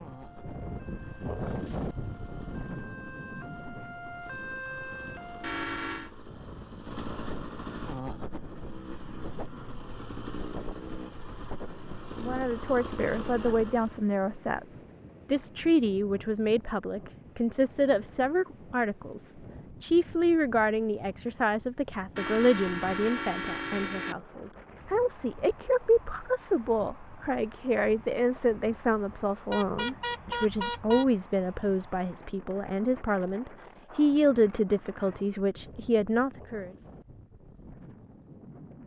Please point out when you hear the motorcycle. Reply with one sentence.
The motorcycle can be heard from 0.0 to 14.1 s.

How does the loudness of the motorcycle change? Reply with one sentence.
The loudness of the motorcycle goes up.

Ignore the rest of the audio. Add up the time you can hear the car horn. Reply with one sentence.
The car horn can be heard for 4 seconds in total.